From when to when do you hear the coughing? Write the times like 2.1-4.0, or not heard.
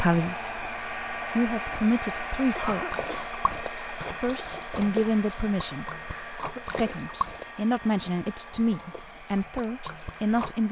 2.5-3.3, 6.0-7.0.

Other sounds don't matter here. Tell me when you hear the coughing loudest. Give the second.
3 s.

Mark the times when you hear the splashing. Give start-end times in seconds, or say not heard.
2.5-10.6.